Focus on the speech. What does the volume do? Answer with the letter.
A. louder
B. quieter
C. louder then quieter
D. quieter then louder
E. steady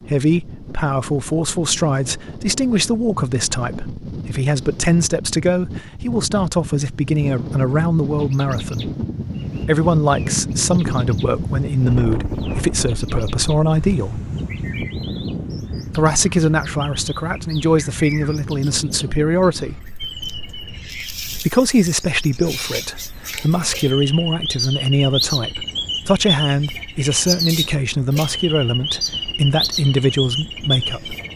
E.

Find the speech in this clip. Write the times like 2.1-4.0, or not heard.
0.1-8.9, 9.6-14.2, 15.9-19.8, 21.4-31.1.